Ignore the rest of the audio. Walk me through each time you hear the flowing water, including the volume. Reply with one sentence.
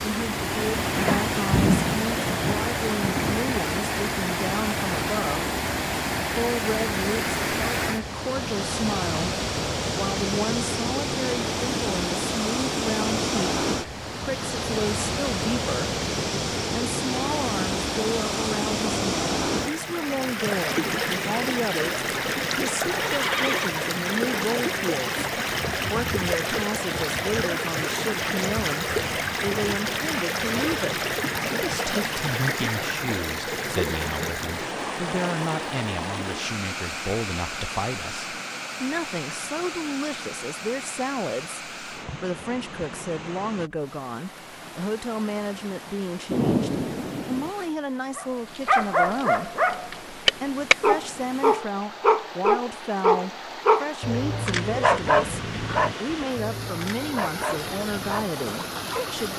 You can hear the flowing water from 0.0 to 59.3 s, getting quieter.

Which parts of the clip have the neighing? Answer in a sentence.
The neighing can be heard from 22.9 to 23.8 s.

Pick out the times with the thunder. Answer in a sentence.
You can hear the thunder from 0.8 to 3.5 s and from 46.3 to 47.5 s.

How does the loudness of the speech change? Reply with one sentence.
The loudness of the speech stays about the same.